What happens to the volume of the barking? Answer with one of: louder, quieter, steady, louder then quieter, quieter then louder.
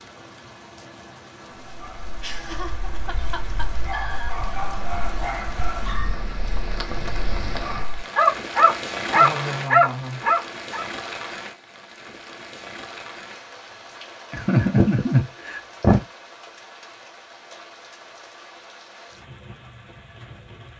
louder.